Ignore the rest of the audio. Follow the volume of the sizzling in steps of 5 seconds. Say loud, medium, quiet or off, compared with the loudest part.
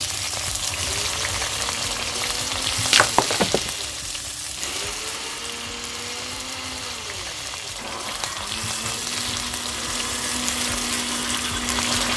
loud, medium, loud.